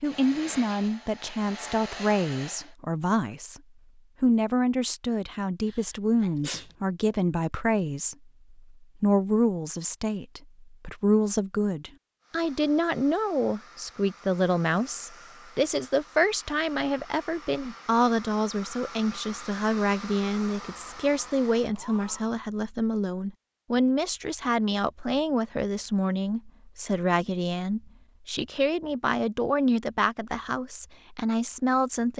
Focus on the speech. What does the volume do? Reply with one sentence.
The loudness of the speech stays about the same.